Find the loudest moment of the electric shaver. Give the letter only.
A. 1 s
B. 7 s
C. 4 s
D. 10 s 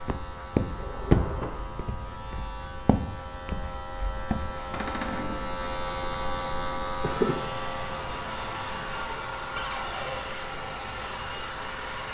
B.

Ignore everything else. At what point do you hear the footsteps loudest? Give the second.
1 s.